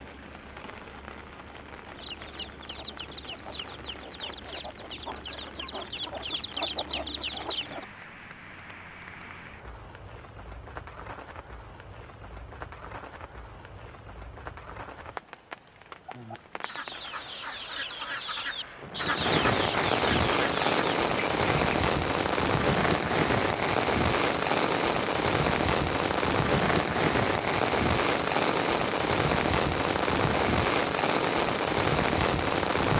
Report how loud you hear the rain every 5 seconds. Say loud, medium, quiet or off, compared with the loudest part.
quiet, quiet, quiet, medium, loud, loud, loud.